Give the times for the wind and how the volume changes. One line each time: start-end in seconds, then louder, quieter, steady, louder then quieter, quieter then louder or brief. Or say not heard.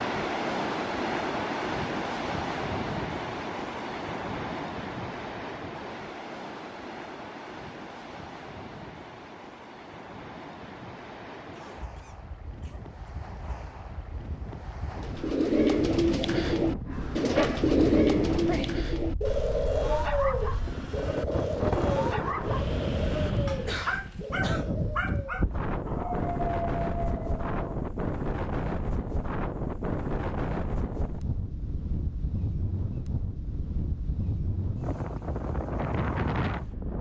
0.0-36.9 quieter then louder.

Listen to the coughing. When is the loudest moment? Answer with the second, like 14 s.
24 s.